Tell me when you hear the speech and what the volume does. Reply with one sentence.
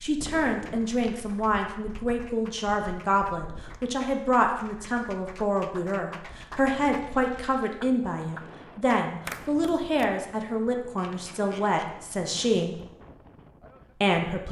The speech can be heard from 0.0 to 12.8 s, at a steady volume; and briefly from 14.0 to 14.4 s.